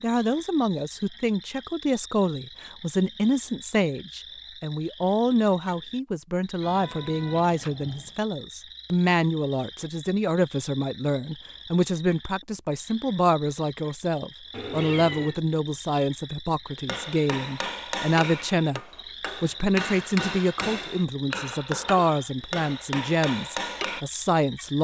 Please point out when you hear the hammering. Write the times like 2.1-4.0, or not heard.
16.9-24.1.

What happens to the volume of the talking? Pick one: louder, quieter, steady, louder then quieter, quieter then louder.
steady.